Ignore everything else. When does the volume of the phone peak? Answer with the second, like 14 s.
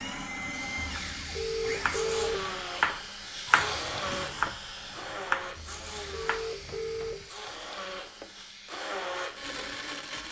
2 s.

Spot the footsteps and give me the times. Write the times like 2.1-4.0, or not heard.
not heard.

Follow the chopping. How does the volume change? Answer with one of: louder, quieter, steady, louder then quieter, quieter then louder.
quieter.